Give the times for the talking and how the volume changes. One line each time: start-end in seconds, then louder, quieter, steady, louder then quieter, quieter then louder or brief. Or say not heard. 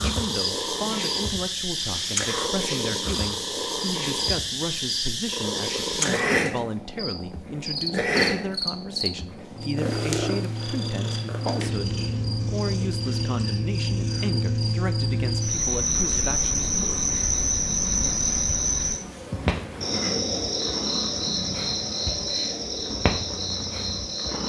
0.0-16.7 steady.